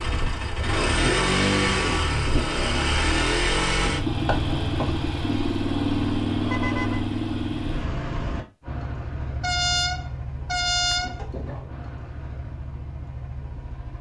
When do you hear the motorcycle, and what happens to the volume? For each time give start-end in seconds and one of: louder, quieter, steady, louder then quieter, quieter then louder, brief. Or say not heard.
0.0-13.9 quieter.